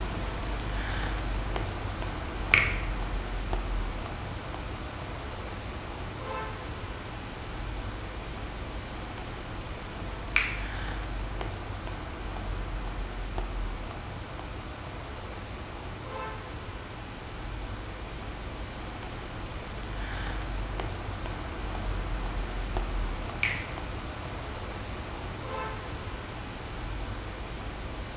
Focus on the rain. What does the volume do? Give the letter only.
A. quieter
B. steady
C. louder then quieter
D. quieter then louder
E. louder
B.